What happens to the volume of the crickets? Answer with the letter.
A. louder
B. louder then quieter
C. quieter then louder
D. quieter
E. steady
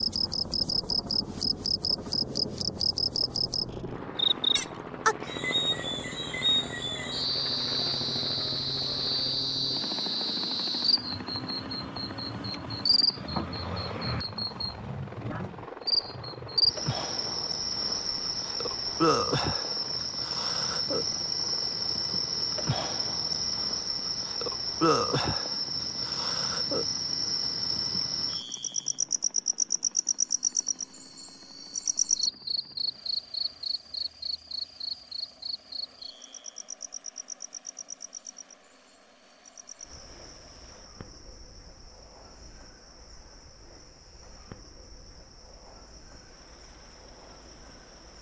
D.